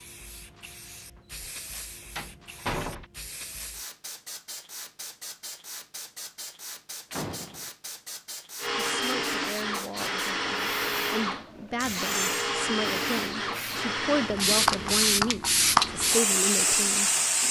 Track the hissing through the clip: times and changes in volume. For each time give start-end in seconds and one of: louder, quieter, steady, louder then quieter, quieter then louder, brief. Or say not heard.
0.0-17.4 louder.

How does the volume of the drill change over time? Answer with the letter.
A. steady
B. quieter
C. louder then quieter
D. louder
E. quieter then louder
B.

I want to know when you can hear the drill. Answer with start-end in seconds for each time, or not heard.
8.6-17.4.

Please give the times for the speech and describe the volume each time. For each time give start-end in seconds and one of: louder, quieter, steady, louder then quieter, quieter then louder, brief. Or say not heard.
8.8-17.1 louder.